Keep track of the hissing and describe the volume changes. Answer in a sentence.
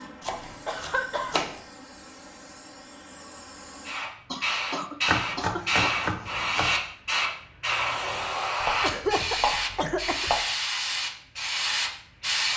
The loudness of the hissing goes up.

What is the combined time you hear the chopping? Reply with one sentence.
You can hear the chopping for 5 seconds altogether.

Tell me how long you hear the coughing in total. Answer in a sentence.
You can hear the coughing for 4 seconds altogether.